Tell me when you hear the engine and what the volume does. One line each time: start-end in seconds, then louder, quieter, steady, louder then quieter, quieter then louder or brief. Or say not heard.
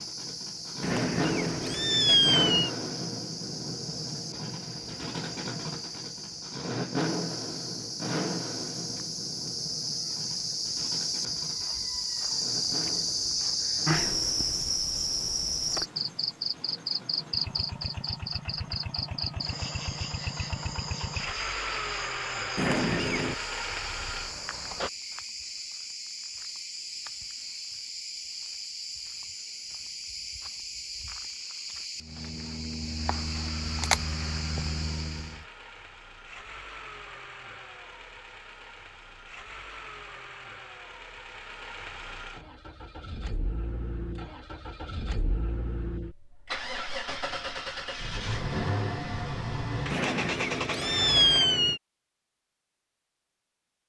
0.0-24.9 quieter then louder
33.0-51.4 louder.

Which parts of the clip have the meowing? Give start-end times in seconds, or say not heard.
0.8-2.7, 22.6-23.4, 49.9-51.8.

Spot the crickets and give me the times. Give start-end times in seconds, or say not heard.
0.0-35.5.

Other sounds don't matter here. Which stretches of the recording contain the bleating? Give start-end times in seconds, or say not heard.
not heard.